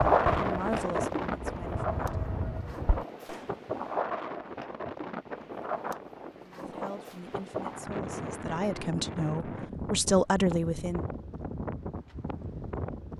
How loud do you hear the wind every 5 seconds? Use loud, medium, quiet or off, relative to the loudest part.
loud, medium, medium.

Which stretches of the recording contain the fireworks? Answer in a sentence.
You can hear the fireworks from 0.0 to 3.5 s.